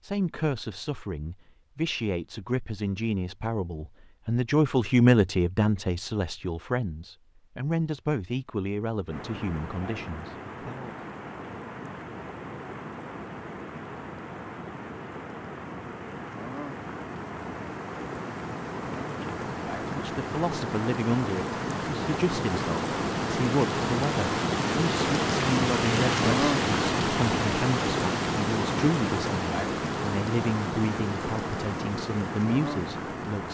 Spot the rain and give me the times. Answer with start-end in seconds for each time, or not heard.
9.1-33.4.